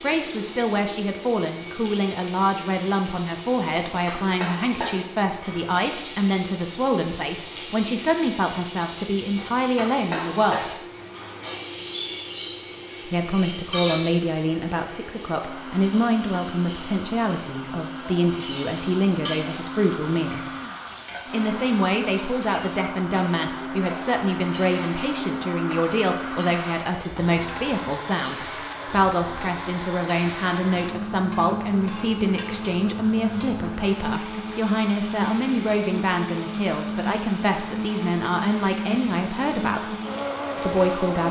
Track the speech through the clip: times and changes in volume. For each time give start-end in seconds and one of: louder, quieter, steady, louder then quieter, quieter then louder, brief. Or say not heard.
0.0-10.8 steady
13.1-20.5 steady
21.3-40.0 steady
40.5-41.2 brief.